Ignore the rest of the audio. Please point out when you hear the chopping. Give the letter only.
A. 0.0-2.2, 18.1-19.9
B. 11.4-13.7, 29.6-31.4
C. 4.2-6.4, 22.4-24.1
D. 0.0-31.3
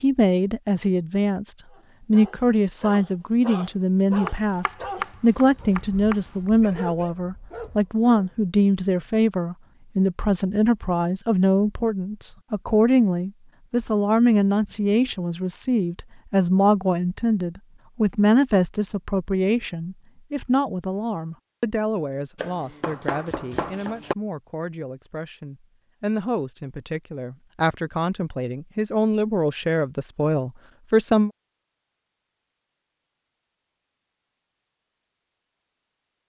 C.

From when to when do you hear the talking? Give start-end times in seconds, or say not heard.
0.0-31.3.